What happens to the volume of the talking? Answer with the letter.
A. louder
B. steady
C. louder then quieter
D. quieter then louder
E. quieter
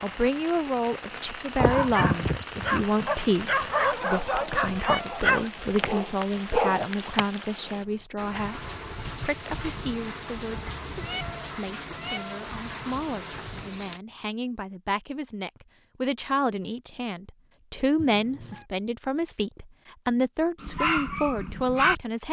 D.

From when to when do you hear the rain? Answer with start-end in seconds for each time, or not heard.
0.0-14.0.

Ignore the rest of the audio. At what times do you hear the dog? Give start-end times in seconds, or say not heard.
1.6-6.8, 20.6-21.9.